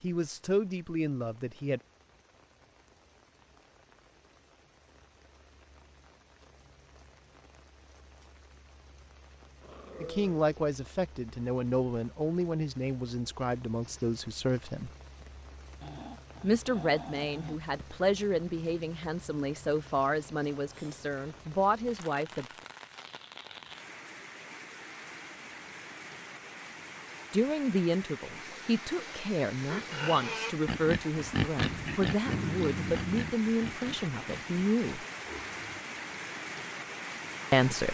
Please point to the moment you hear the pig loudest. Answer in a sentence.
The volume of the pig peaks at 32 seconds.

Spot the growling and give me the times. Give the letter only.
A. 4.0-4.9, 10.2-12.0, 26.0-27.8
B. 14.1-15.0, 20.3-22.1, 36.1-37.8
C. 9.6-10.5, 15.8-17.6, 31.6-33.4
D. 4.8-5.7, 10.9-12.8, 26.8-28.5
C.